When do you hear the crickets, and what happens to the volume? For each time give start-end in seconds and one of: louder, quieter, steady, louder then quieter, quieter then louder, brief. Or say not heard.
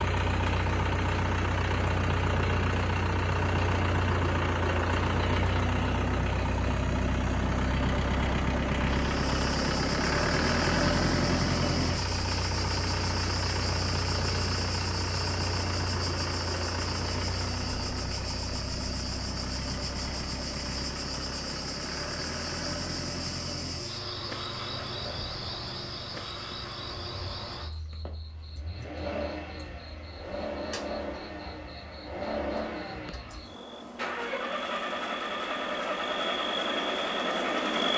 8.9-37.9 quieter then louder.